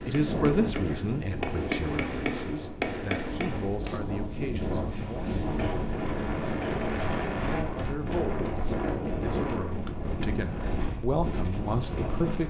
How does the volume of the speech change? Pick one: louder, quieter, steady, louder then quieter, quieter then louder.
quieter then louder.